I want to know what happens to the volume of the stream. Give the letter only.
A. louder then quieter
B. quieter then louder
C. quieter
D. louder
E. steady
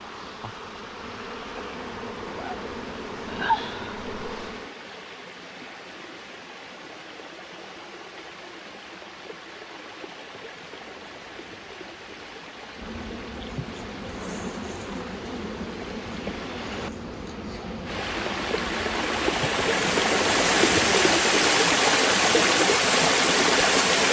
D.